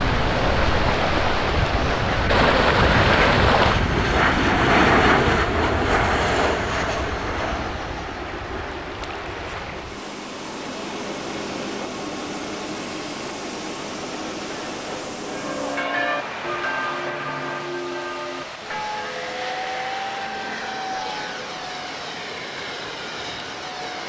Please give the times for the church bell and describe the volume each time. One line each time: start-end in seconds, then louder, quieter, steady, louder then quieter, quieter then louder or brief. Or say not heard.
15.2-21.4 quieter.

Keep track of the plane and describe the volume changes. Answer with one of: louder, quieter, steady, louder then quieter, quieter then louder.
quieter.